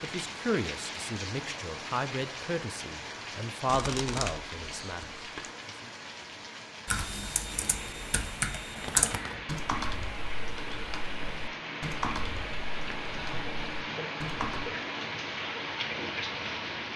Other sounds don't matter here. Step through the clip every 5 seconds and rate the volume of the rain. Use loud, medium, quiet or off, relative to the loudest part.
medium, medium, loud, loud.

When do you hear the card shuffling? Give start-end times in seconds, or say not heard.
3.6-5.5, 8.8-9.4.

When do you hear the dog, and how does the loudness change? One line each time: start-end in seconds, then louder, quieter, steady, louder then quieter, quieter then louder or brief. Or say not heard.
not heard.